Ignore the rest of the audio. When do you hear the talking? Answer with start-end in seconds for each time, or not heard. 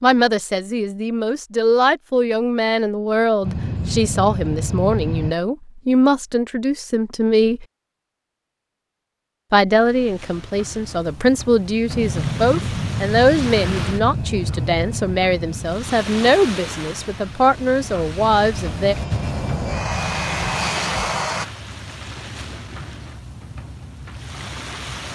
0.0-7.7, 9.5-18.9.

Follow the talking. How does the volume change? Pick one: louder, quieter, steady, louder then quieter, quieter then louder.
steady.